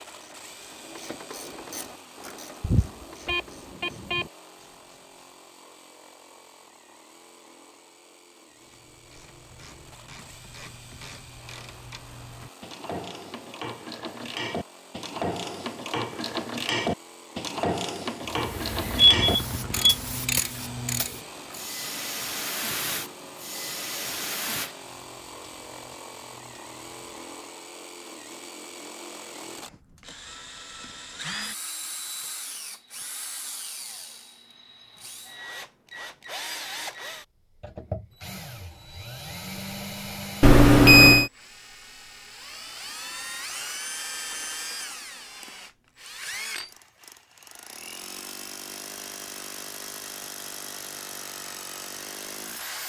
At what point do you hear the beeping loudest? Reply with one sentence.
The loudest moment of the beeping is at 41 seconds.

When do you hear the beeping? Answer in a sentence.
The beeping can be heard from 2.6 to 4.2 s, from 19.2 to 19.9 s and from 40.4 to 41.3 s.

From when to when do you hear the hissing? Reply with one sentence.
You can hear the hissing from 18.3 to 27.3 s.